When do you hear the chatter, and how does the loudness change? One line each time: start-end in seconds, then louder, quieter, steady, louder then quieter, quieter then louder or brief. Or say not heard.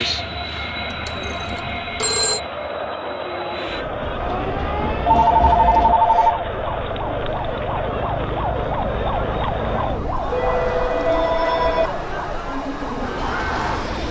2.2-14.0 steady.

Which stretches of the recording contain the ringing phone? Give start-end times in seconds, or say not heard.
0.9-2.4, 5.0-6.4, 10.3-11.9.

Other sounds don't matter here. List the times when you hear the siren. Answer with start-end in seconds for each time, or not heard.
4.1-14.0.